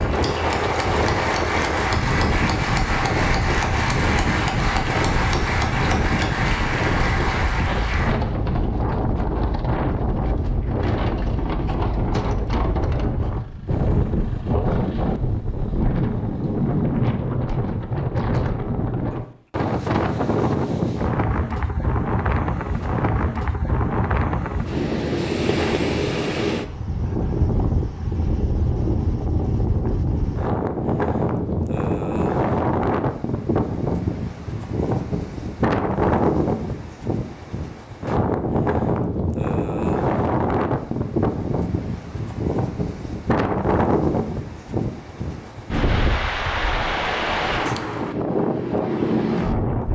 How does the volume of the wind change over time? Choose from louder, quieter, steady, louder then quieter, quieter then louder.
steady.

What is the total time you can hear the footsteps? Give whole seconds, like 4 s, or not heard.
not heard.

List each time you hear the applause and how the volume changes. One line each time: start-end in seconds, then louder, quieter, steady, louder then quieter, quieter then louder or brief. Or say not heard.
0.0-8.2 steady.